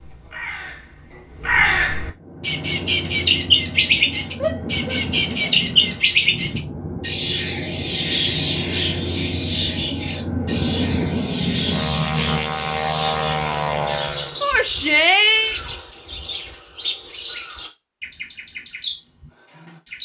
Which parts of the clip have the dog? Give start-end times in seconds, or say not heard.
not heard.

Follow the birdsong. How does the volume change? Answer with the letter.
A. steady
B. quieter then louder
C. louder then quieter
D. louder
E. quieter
E.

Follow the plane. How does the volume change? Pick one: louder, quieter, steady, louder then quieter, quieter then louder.
louder.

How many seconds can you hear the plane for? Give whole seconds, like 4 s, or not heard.
12 s.